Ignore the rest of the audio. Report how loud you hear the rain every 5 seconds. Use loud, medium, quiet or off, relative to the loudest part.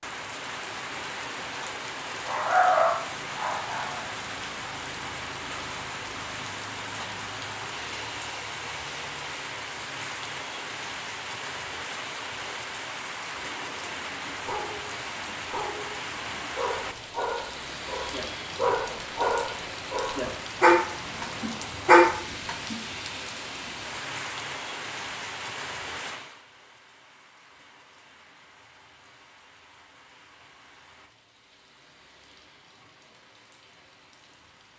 loud, loud, loud, loud, loud, medium, quiet.